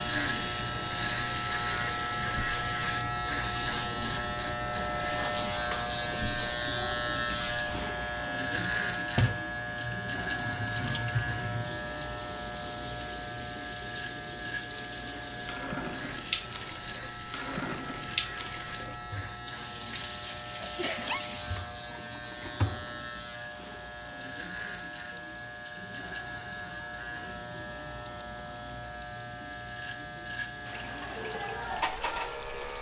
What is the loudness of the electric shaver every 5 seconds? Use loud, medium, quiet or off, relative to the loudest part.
loud, loud, medium, medium, medium, medium, medium.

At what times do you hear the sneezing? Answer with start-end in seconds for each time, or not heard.
20.6-21.2.